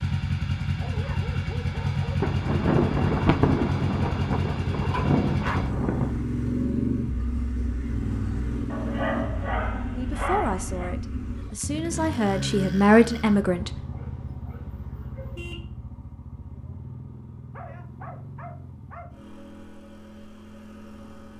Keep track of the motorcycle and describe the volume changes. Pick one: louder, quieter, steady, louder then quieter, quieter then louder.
quieter.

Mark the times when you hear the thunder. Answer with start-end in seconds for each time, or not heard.
2.2-6.2.